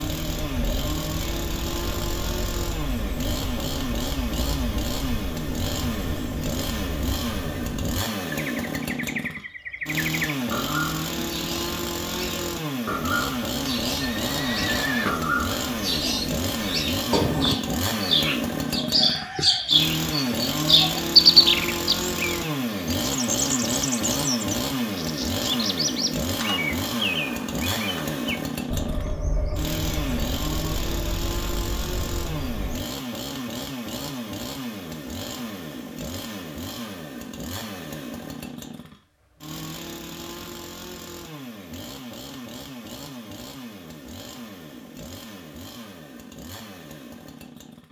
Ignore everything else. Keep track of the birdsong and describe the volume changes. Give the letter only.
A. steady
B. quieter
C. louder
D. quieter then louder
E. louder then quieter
E.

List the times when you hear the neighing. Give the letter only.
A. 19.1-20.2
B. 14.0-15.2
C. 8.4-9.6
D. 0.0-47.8
B.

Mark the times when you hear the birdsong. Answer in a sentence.
You can hear the birdsong from 0.0 to 32.9 s.